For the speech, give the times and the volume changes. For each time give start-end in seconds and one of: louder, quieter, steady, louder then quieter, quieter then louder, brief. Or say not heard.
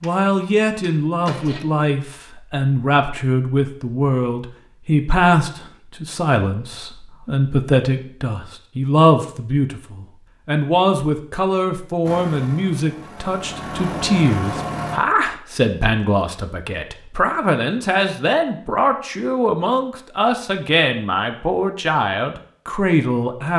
0.0-23.5 steady.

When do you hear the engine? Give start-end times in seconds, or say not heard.
0.0-1.6, 12.1-15.0.